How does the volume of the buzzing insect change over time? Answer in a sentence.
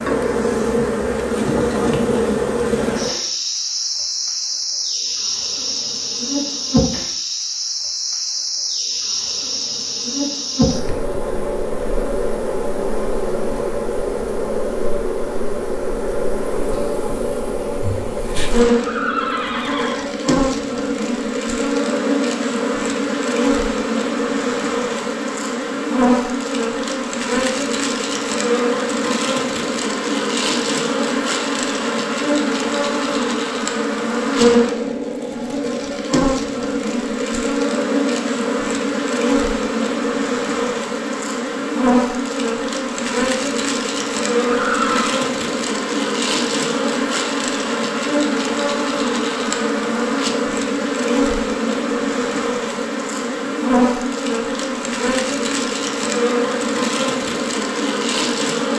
The loudness of the buzzing insect stays about the same.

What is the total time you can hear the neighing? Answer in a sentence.
The neighing can be heard for 2 seconds in total.